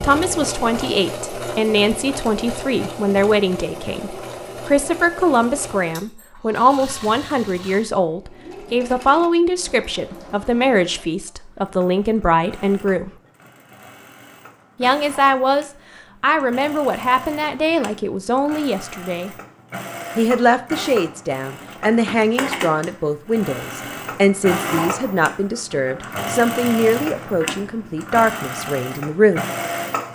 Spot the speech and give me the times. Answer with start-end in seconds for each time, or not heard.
0.0-13.1, 14.8-19.3, 20.1-29.4.